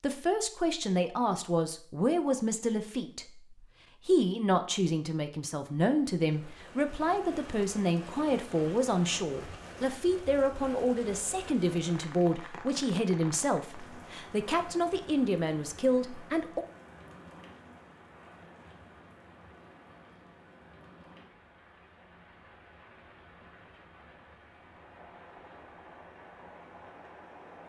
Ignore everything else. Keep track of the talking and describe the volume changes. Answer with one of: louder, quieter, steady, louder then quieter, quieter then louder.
steady.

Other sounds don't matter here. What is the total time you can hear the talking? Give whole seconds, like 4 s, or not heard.
17 s.